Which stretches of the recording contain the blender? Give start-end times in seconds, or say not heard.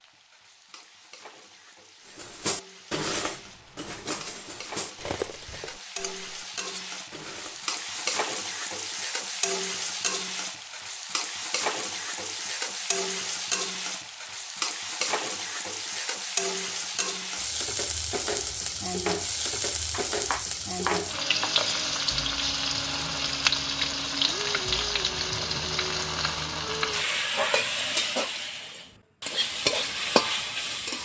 not heard.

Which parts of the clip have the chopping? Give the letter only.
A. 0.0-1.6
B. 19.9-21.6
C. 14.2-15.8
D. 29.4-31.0
B.